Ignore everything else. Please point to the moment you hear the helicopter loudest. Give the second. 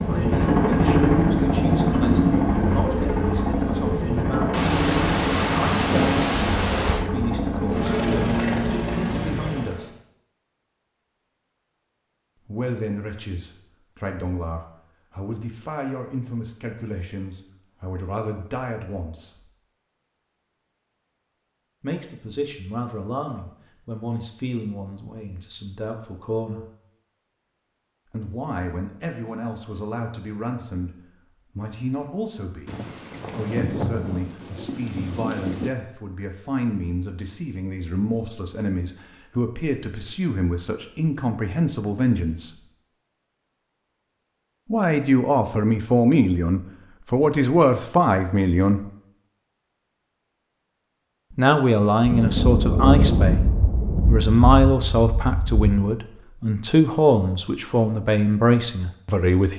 1 s.